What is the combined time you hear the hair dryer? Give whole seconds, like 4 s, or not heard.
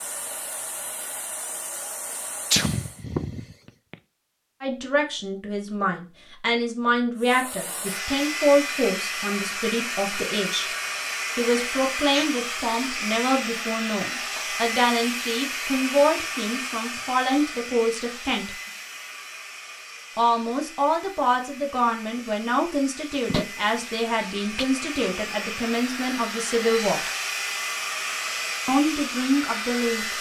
26 s.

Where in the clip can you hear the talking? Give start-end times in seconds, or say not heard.
4.6-10.7, 11.3-18.5, 20.1-27.0, 28.6-30.1.